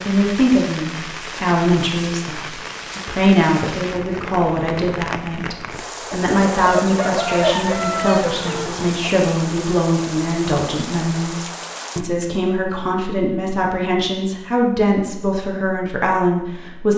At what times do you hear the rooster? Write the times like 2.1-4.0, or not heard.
6.1-8.9.